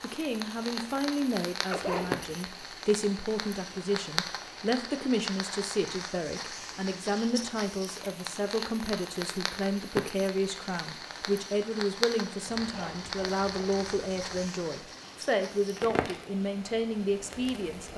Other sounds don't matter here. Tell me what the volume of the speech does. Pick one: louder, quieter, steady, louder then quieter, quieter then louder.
steady.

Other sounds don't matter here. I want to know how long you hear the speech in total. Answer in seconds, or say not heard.
18 s.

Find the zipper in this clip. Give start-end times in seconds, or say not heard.
1.7-2.2, 12.4-14.4.